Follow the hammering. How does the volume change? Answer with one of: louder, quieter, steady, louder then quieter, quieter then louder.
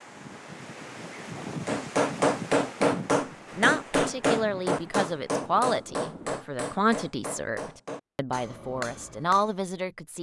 quieter.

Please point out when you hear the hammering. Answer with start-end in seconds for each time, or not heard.
1.6-9.6.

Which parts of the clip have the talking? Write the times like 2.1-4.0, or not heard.
3.5-10.1.